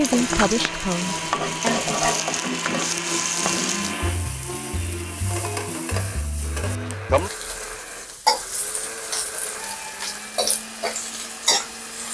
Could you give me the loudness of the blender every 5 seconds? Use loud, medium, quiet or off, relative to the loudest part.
loud, medium, medium.